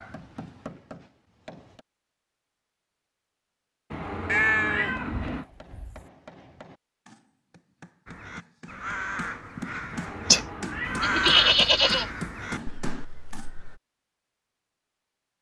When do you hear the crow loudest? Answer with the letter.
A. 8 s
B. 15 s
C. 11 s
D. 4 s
C.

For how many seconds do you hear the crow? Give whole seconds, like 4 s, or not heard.
6 s.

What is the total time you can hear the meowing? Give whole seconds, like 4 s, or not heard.
3 s.